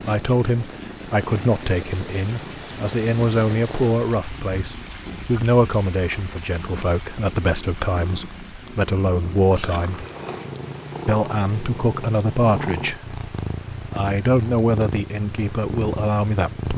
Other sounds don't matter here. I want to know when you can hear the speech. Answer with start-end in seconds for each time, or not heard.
0.1-10.1, 11.1-13.2, 13.9-16.7.